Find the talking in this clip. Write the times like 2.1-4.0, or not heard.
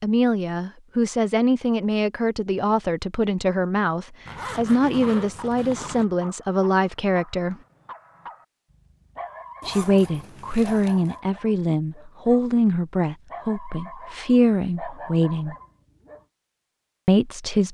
0.0-7.5, 9.7-15.6, 17.1-17.6.